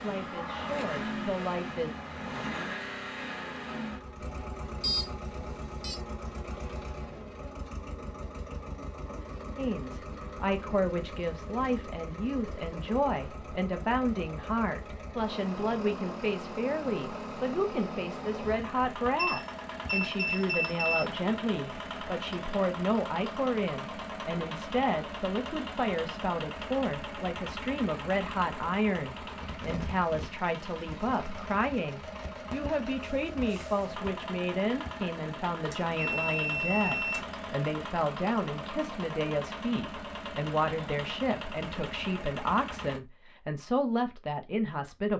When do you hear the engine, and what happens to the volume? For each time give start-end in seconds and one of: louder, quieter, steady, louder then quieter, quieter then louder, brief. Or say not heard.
0.0-43.0 steady.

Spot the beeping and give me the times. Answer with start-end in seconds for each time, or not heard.
4.8-6.0, 19.1-21.1, 35.7-37.3.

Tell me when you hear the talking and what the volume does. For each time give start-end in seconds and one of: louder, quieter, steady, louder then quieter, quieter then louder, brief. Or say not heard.
0.0-1.9 brief
9.6-45.1 steady.